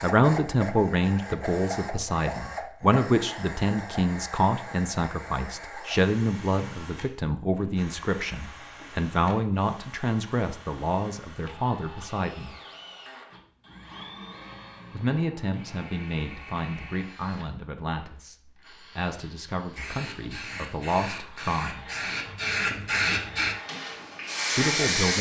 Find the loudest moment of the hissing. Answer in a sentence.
The volume of the hissing peaks at 25 seconds.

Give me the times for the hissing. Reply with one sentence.
You can hear the hissing from 19.8 to 25.1 s.